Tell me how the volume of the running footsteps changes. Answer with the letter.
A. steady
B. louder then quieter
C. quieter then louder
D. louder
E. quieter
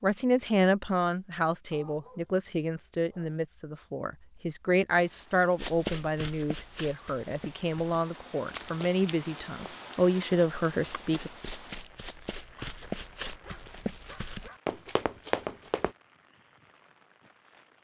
C.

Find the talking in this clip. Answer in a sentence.
The talking can be heard from 0.0 to 11.3 s.